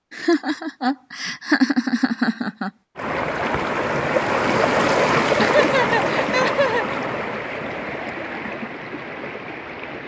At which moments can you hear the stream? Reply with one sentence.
The stream can be heard from 3.0 to 10.0 s.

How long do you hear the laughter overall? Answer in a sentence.
The laughter can be heard for 4 seconds in total.